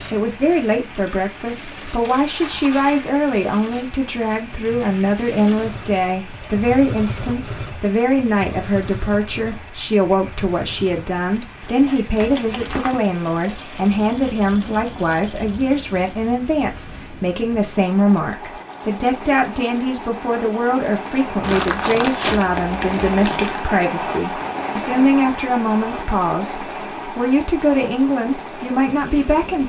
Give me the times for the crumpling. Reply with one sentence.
You can hear the crumpling from 2.0 to 3.0 s, from 12.2 to 13.1 s and from 21.4 to 23.6 s.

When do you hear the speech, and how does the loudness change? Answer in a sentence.
You can hear the speech from 0.1 to 29.6 s, at a steady volume.